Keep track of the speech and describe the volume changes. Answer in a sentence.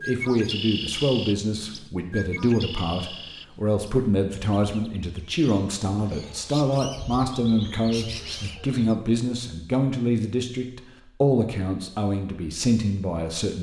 The volume of the speech stays about the same.